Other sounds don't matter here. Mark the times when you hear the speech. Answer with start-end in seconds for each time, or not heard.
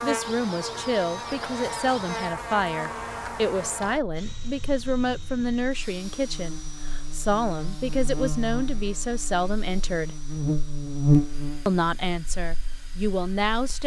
0.0-10.2, 11.7-13.8.